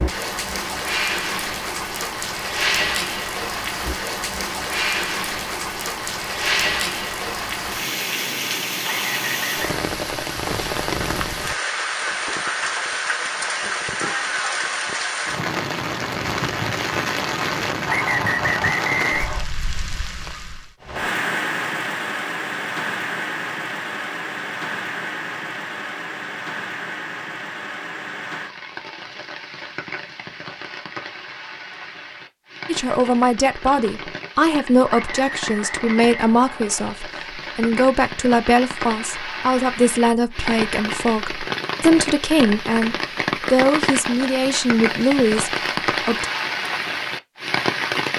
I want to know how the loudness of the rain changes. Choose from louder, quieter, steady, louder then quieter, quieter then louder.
quieter then louder.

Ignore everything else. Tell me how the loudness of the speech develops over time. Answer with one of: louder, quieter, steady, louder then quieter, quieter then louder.
steady.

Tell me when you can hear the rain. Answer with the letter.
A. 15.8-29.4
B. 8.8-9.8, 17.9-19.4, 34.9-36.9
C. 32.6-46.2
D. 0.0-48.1
D.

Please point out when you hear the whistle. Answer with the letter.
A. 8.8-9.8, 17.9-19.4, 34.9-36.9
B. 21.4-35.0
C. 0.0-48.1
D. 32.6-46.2
A.